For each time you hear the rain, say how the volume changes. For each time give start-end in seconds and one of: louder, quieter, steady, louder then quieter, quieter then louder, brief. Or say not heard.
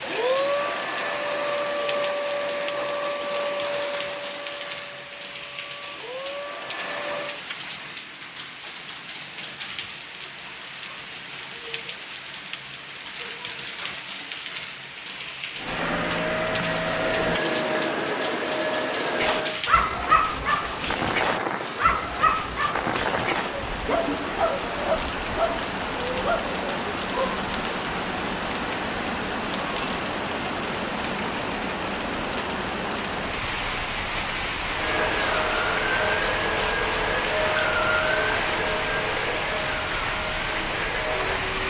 0.0-41.6 louder.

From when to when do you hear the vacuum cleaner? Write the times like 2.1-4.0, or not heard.
0.0-7.4, 15.6-19.6, 34.7-41.6.